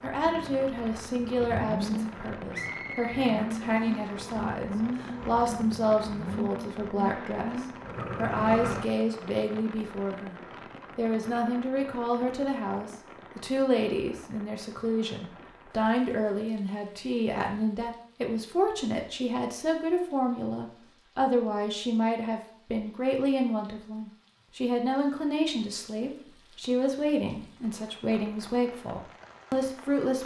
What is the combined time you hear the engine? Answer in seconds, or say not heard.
9 s.